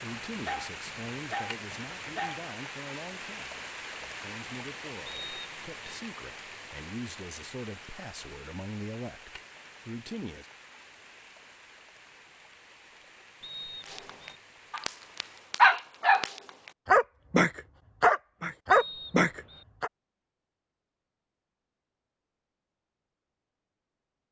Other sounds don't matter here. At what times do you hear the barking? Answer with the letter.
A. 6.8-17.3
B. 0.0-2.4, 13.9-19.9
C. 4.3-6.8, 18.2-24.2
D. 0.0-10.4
B.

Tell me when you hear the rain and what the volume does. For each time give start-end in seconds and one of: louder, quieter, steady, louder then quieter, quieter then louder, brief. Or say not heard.
0.0-15.7 quieter.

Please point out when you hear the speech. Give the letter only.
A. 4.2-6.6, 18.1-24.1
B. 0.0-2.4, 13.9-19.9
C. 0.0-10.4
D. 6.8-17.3
C.